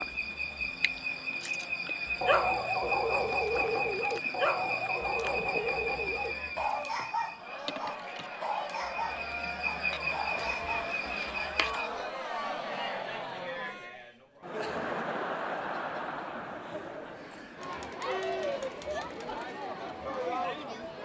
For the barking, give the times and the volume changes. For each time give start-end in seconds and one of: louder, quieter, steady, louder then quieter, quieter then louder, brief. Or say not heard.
2.2-12.1 quieter.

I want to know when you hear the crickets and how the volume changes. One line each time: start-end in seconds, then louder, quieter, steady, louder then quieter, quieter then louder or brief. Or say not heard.
0.0-12.0 quieter then louder.